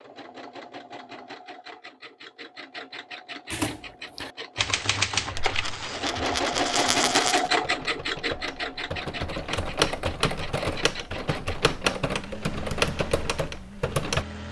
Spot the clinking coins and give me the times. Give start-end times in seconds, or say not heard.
5.3-7.5.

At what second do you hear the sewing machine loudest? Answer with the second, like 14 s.
7 s.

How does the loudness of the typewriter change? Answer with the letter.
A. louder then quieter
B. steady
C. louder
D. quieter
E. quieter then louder
E.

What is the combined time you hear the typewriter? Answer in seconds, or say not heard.
11 s.